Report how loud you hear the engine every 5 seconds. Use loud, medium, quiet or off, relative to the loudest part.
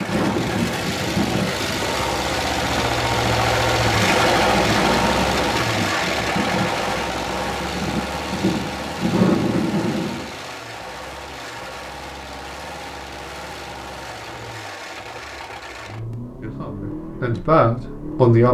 loud, loud, quiet, quiet.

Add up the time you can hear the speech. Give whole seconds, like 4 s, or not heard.
2 s.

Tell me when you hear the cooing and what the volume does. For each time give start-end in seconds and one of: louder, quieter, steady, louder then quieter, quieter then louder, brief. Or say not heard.
not heard.